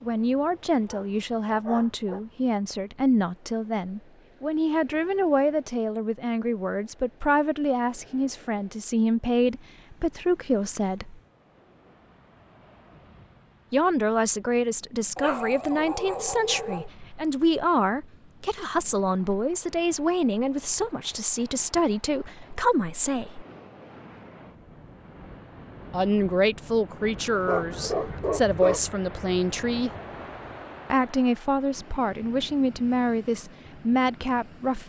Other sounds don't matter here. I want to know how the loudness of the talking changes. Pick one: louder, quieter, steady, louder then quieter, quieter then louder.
steady.